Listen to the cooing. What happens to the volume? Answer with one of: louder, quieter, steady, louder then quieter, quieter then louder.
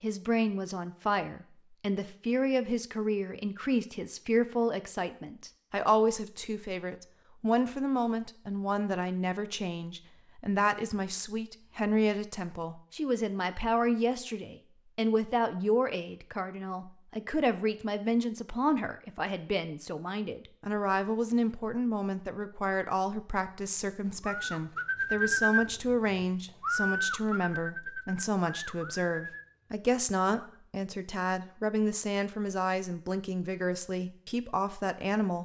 quieter.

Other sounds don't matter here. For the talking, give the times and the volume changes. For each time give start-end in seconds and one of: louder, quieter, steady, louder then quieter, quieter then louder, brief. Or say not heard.
0.0-35.4 steady.